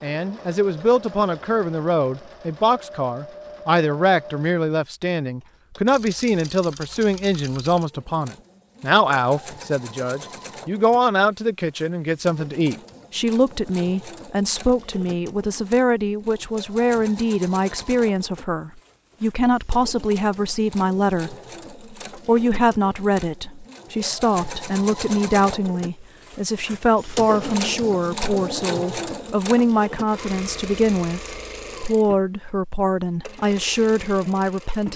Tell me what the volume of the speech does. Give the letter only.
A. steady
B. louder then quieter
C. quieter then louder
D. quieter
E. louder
A.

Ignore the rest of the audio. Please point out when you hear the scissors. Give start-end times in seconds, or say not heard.
not heard.